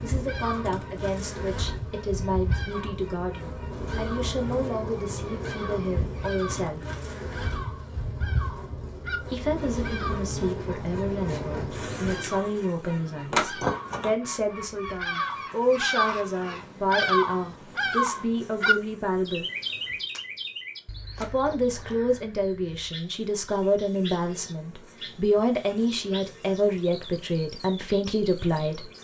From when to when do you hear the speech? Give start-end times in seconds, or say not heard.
0.0-6.8, 9.2-19.4, 21.2-28.9.